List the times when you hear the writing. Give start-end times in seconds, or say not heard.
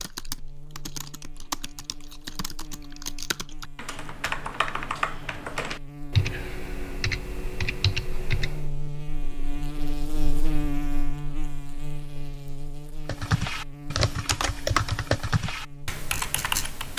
not heard.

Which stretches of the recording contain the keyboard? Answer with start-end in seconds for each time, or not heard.
0.0-8.7, 13.1-16.9.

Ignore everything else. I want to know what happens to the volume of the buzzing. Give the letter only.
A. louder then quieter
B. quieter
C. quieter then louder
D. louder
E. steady
A.